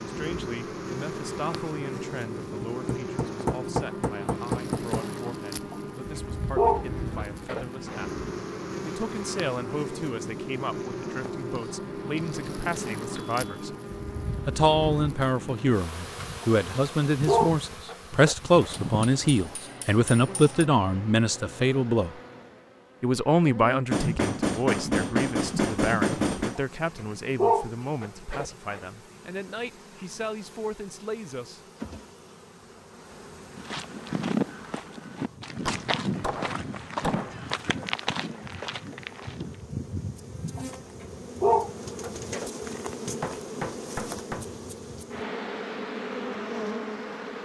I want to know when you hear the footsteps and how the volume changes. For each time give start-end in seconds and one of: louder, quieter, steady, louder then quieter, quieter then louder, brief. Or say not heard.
33.5-39.6 quieter.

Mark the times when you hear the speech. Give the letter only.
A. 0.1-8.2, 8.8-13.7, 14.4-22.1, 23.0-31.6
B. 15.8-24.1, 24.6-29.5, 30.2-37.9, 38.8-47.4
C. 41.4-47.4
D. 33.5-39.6
A.